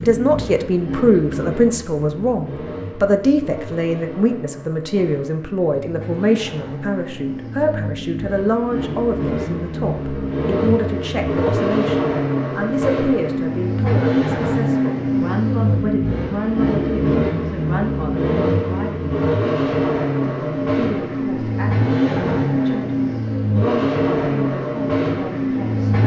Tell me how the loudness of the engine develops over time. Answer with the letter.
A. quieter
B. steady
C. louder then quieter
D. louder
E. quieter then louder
D.